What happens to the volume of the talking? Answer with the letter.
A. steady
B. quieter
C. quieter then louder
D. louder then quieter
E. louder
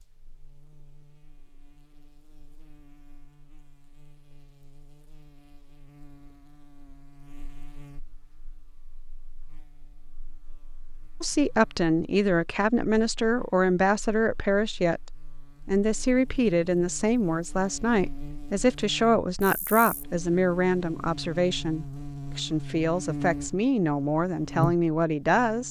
A.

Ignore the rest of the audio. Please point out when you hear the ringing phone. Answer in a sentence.
The ringing phone can't be heard in this clip.